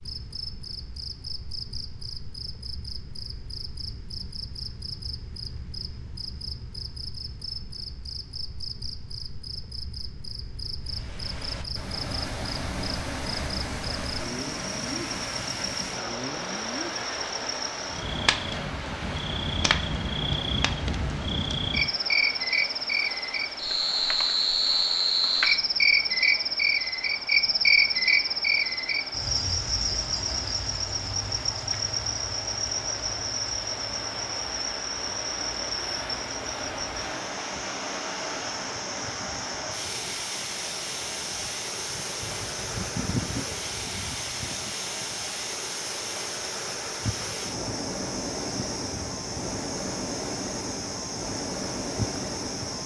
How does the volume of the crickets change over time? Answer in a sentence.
The loudness of the crickets goes up, then down.